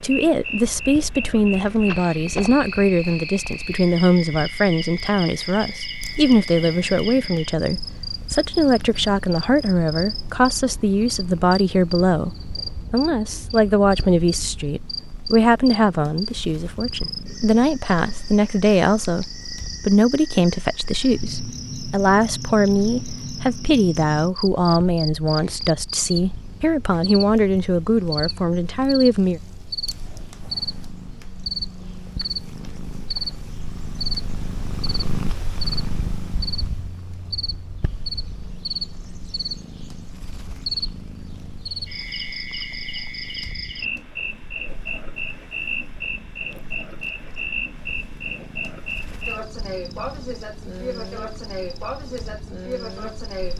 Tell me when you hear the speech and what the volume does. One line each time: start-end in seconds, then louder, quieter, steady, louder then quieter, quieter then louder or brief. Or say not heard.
0.0-29.4 steady.